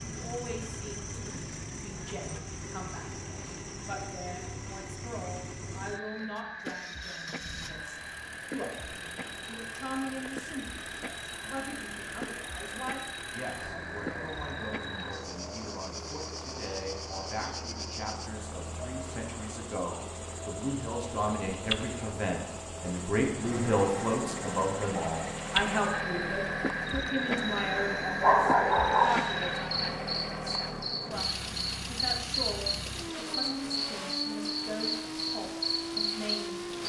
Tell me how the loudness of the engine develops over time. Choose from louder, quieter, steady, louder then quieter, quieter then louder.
louder.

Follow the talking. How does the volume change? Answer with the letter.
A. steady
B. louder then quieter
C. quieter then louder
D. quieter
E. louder
B.